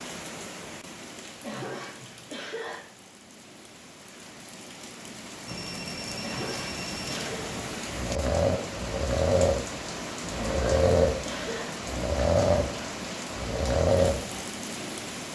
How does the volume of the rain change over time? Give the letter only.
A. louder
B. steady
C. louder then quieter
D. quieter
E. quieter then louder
A.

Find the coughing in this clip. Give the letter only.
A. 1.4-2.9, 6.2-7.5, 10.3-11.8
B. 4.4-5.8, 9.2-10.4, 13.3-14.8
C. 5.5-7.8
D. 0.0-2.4
A.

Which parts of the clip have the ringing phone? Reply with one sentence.
The ringing phone can be heard from 5.5 to 7.8 s.